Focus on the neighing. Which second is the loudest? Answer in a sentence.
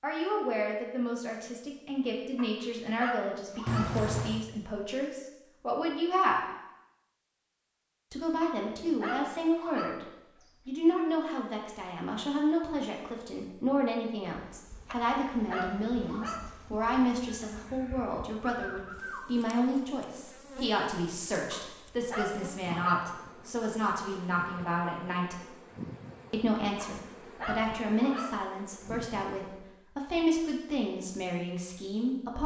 The loudest moment of the neighing is at 4 seconds.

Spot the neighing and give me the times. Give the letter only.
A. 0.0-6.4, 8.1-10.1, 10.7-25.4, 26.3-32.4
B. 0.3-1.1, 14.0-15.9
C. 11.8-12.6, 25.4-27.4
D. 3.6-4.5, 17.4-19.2
D.